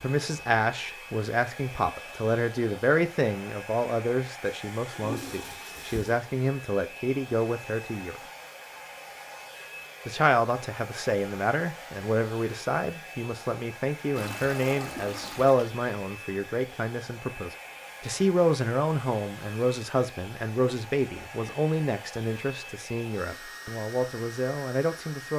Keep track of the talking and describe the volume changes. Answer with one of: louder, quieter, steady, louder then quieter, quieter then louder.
steady.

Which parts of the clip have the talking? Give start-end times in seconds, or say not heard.
0.0-8.2, 10.1-25.3.